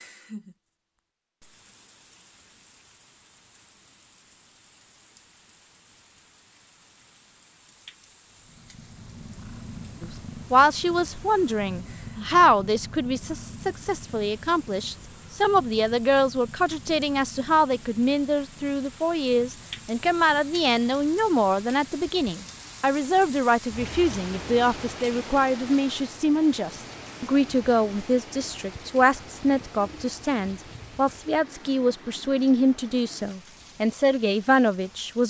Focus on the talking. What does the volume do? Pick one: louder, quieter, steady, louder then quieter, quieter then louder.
steady.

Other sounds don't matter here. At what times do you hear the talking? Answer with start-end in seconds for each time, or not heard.
10.0-35.2.